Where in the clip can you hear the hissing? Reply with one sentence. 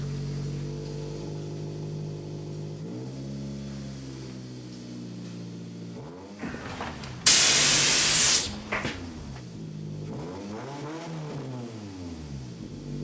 You can hear the hissing from 6.4 to 9.3 s.